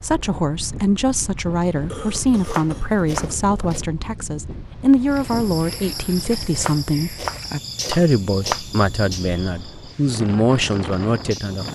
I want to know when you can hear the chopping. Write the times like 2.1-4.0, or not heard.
2.1-3.9, 6.2-8.6.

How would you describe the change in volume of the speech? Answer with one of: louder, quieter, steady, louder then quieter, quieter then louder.
steady.